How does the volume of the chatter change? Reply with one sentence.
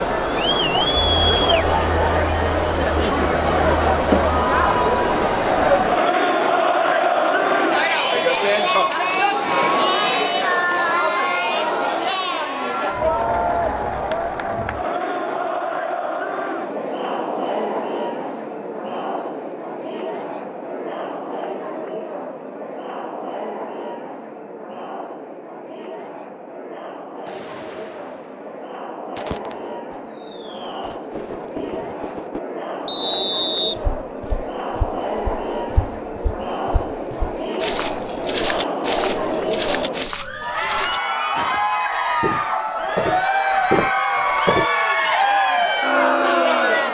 The loudness of the chatter goes down, then up.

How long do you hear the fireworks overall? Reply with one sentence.
The fireworks can be heard for 5 seconds in total.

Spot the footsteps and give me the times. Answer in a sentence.
The footsteps can be heard from 33.8 to 44.7 s.